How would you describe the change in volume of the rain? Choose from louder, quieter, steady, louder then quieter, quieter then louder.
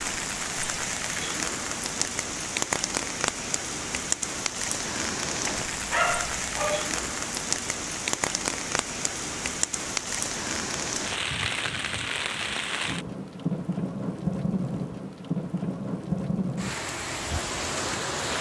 steady.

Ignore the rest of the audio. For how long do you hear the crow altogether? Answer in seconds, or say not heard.
not heard.